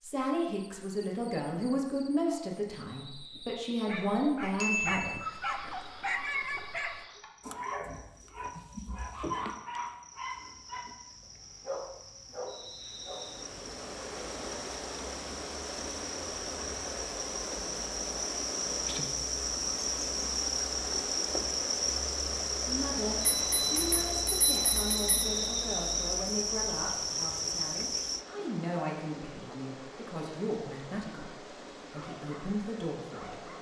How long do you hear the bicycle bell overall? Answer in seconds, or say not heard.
3 s.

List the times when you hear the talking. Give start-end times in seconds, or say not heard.
0.0-5.2, 22.6-33.5.